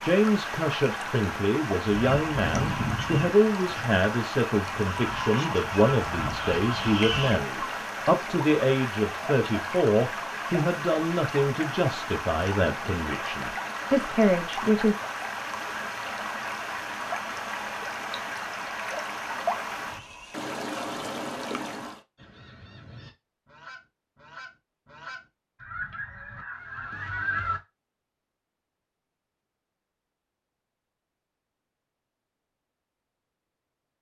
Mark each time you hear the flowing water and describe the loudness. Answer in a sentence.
The flowing water can be heard from 0.0 to 22.0 s, at a steady volume.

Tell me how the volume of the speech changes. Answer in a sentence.
The loudness of the speech stays about the same.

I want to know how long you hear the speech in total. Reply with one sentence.
You can hear the speech for 15 seconds altogether.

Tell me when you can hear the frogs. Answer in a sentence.
You can't hear the frogs here.